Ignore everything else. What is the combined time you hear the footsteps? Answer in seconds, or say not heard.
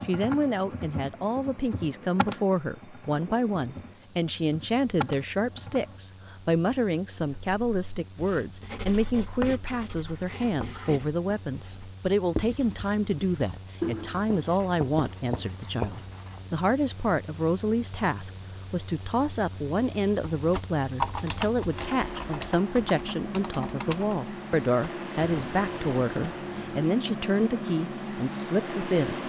not heard.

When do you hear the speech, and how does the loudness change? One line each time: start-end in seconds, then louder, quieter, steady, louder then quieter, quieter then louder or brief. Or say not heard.
0.0-29.2 steady.